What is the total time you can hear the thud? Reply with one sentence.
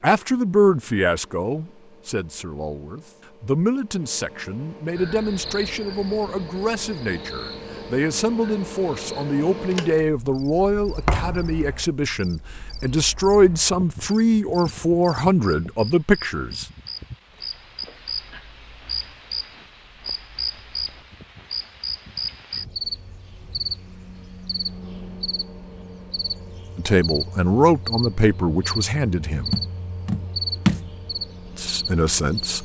You can hear the thud for 2 seconds altogether.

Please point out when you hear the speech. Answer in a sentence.
You can hear the speech from 0.0 to 16.6 s, from 26.8 to 29.6 s and from 31.6 to 32.6 s.